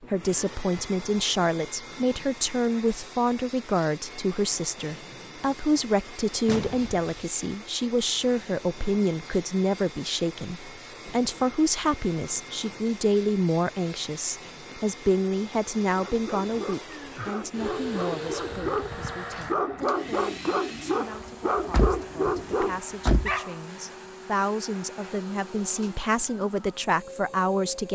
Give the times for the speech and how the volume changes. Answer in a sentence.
The speech can be heard from 0.0 to 27.8 s, getting quieter then louder.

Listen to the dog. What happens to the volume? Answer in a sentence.
The loudness of the dog goes up.